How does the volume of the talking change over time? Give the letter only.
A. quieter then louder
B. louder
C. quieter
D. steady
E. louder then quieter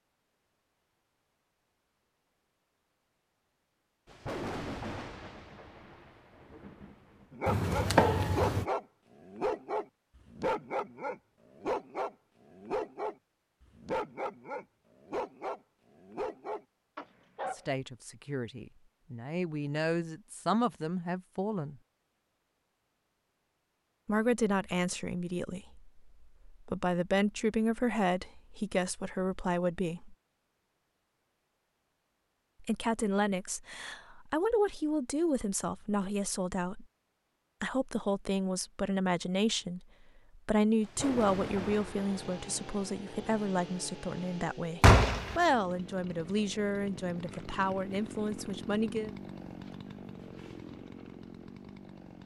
D.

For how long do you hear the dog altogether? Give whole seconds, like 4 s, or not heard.
10 s.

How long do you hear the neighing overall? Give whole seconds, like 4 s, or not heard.
2 s.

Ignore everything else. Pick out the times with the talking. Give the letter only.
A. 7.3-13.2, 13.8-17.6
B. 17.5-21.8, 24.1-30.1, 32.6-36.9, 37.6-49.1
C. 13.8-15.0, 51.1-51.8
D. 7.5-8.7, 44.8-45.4
B.